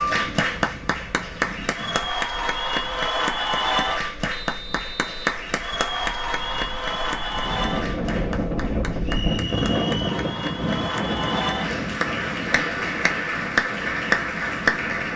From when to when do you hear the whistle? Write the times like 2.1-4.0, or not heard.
4.3-5.3, 9.0-10.2.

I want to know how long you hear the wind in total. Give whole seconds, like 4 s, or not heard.
15 s.